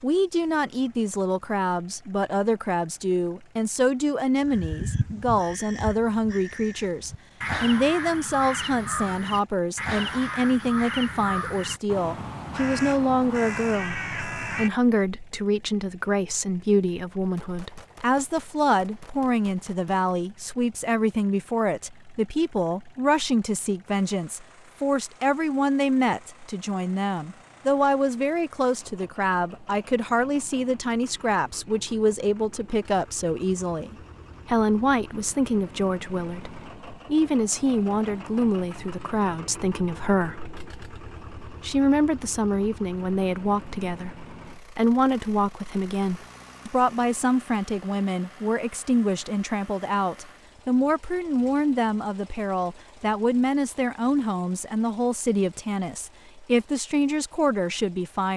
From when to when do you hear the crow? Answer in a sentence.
The crow can be heard from 4.4 to 14.7 s.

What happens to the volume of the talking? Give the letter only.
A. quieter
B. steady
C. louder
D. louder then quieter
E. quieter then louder
B.